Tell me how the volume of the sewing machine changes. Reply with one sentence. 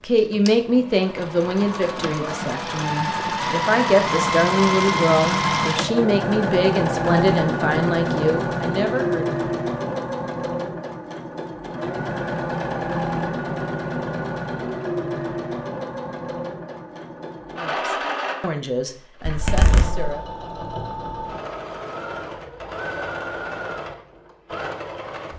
The loudness of the sewing machine goes down.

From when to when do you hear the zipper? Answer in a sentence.
You can hear the zipper from 19.2 to 20.1 s.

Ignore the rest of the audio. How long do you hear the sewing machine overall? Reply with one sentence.
You can hear the sewing machine for 25 seconds altogether.